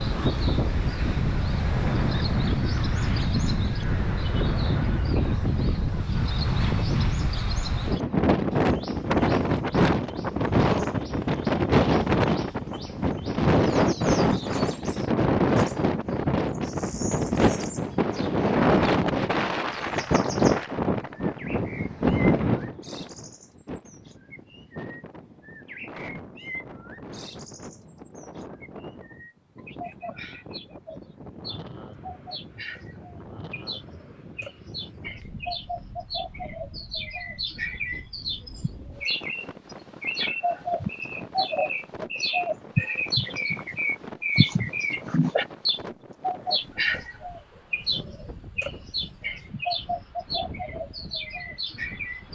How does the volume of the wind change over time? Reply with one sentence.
The volume of the wind goes down.